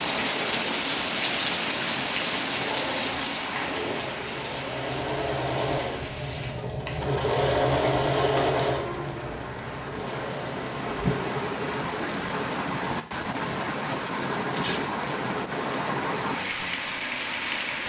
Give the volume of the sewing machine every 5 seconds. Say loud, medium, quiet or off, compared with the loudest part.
medium, loud, medium, off.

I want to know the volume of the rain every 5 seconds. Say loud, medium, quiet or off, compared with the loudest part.
loud, medium, loud, loud.